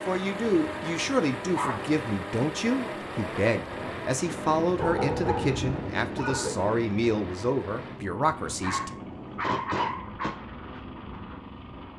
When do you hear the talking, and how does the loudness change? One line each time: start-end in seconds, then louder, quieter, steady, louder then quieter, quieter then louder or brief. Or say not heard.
0.1-8.9 steady.